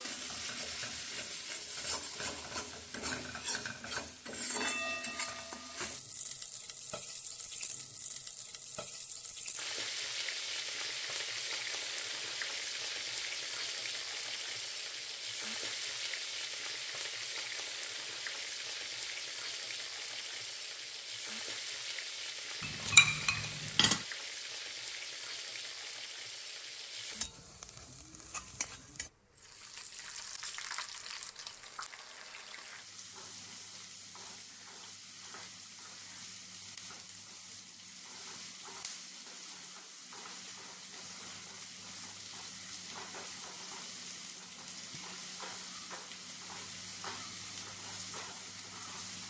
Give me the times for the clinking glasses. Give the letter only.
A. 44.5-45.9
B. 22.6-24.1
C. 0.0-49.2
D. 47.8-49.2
B.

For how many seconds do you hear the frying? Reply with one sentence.
You can hear the frying for 49 seconds altogether.